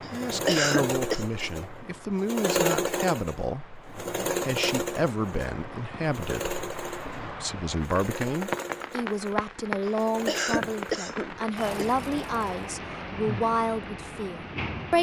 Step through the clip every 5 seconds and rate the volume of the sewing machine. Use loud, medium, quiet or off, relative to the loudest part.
loud, medium, medium.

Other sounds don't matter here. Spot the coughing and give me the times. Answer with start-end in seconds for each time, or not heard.
0.0-1.2, 9.8-11.8.